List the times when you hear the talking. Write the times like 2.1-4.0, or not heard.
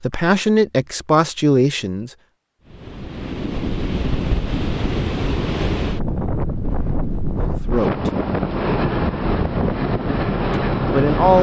0.0-2.1, 7.7-8.1, 10.9-11.3.